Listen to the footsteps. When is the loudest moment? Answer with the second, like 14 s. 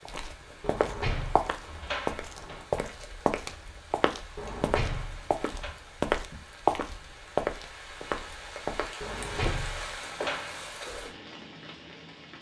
7 s.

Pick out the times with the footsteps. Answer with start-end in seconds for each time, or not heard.
0.1-10.7.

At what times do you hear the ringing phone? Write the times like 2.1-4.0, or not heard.
not heard.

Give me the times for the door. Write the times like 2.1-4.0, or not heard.
0.6-2.6, 4.3-5.7, 9.0-10.7.